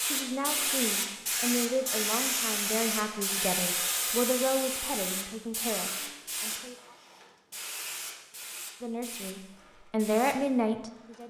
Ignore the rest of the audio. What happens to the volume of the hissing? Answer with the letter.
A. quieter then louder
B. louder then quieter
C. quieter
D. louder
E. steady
C.